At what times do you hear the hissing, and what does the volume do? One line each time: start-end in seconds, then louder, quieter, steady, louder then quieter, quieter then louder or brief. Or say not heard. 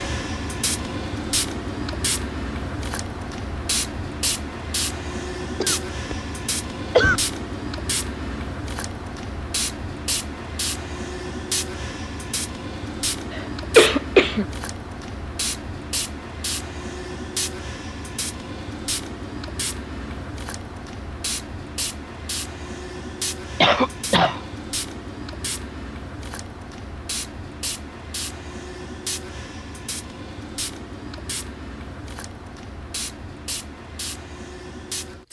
0.0-35.2 quieter.